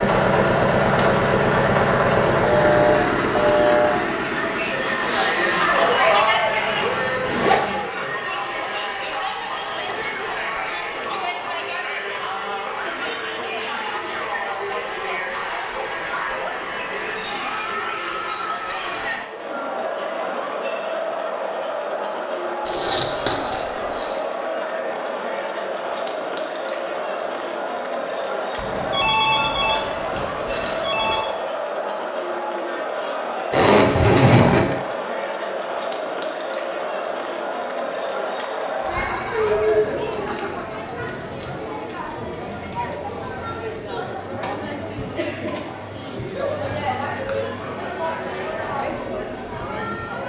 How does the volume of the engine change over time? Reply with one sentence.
The loudness of the engine goes down.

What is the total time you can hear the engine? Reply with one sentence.
You can hear the engine for 8 seconds altogether.